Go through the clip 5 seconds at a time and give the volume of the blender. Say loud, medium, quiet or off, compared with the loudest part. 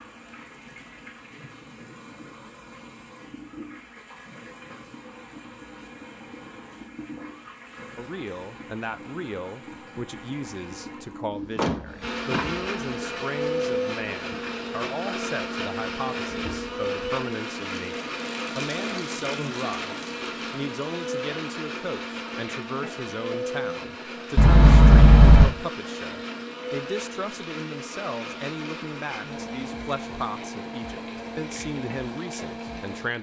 off, off, loud, loud, loud, medium, medium.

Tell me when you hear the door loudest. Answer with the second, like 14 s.
25 s.